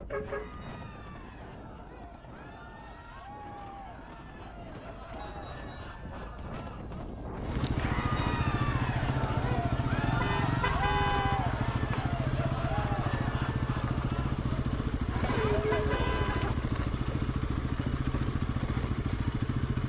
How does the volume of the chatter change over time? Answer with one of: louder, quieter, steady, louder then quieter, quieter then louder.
louder.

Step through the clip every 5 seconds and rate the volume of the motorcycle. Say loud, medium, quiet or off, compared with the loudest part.
off, loud, loud, loud.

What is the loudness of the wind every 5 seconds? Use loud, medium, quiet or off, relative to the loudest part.
medium, loud, off, off.